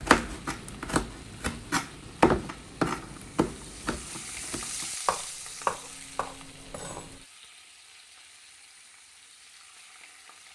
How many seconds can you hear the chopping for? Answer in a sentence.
You can hear the chopping for 7 seconds altogether.